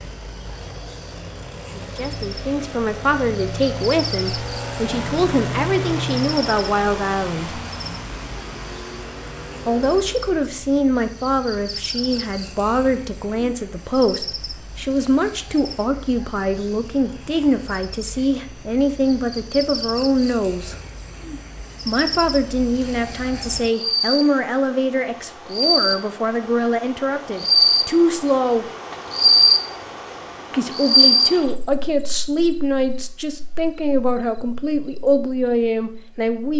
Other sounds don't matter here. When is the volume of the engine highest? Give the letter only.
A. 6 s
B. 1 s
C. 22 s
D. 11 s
A.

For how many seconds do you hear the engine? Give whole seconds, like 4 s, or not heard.
10 s.